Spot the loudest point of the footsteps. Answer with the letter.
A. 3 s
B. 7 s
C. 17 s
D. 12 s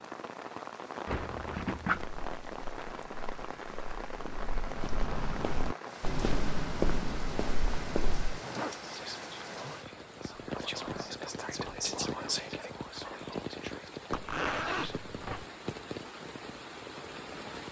B.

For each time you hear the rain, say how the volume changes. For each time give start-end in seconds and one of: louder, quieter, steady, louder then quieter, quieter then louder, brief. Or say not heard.
0.0-17.6 steady.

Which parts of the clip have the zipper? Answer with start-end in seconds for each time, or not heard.
1.1-2.0, 8.1-8.8, 14.1-15.4.